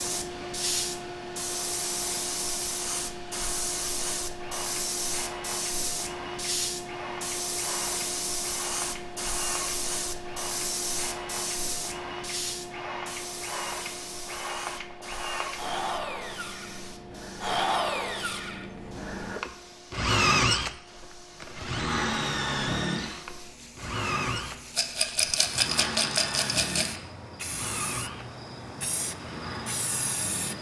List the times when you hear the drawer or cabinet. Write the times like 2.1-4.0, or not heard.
not heard.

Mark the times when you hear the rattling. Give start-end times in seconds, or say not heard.
24.8-26.9.